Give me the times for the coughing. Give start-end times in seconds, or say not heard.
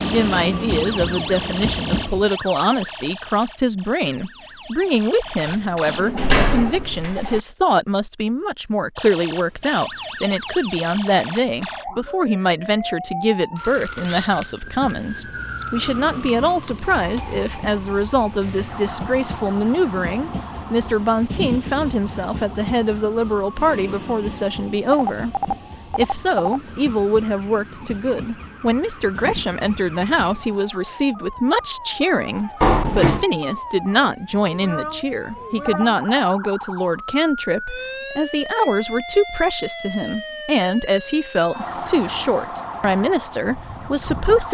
not heard.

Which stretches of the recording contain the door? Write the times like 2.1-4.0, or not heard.
5.5-7.4, 16.9-17.4, 32.6-33.2.